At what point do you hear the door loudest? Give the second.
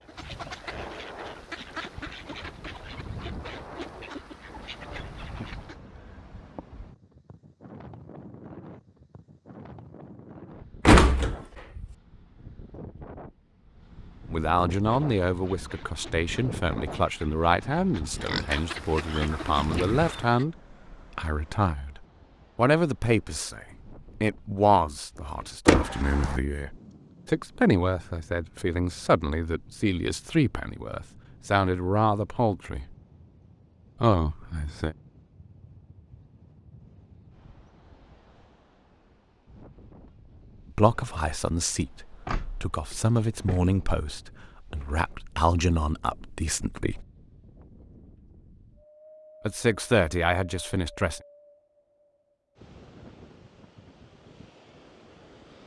11 s.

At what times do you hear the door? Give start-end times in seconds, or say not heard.
10.8-11.8, 25.6-26.4, 42.2-43.9.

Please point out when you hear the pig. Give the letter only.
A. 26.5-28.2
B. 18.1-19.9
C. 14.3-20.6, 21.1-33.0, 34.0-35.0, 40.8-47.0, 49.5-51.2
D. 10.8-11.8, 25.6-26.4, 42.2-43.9
B.